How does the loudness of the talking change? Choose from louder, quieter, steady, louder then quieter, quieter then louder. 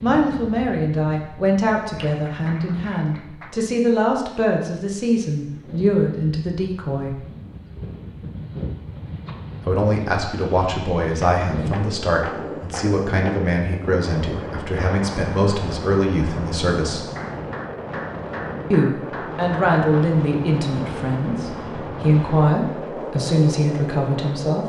steady.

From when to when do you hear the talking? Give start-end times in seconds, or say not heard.
0.0-7.2, 9.7-17.1, 18.7-24.6.